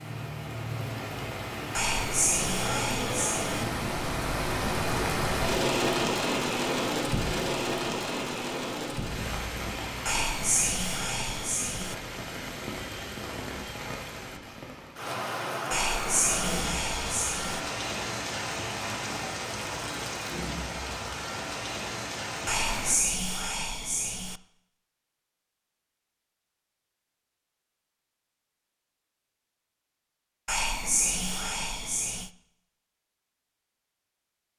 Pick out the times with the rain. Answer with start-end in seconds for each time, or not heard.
0.0-22.9.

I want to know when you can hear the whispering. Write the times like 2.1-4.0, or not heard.
1.8-3.6, 10.1-11.9, 15.7-17.6, 22.4-24.4, 30.4-32.3.